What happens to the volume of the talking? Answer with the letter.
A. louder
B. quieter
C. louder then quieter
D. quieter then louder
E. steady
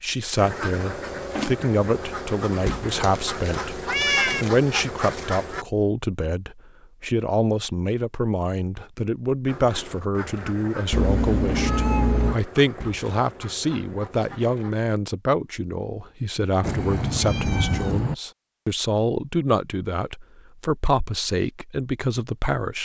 E.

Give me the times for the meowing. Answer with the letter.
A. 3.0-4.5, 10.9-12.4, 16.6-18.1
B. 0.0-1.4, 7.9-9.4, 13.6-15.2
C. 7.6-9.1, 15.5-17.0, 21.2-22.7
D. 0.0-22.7
A.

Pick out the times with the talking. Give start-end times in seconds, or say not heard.
0.0-22.7.